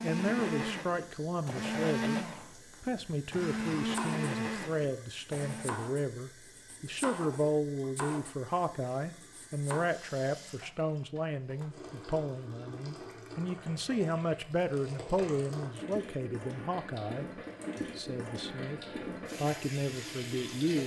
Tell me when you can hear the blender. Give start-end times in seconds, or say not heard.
0.0-5.8.